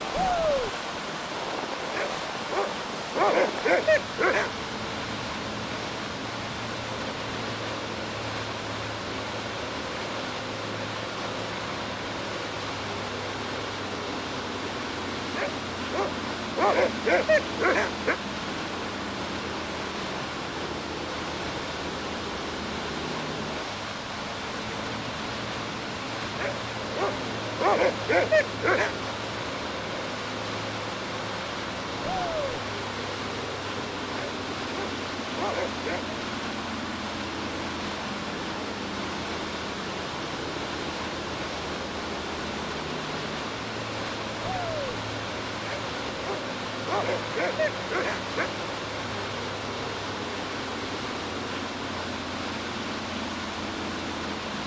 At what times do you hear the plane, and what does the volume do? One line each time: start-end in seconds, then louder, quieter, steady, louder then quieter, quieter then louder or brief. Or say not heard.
0.0-54.6 steady.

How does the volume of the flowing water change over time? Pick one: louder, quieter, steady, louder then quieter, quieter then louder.
steady.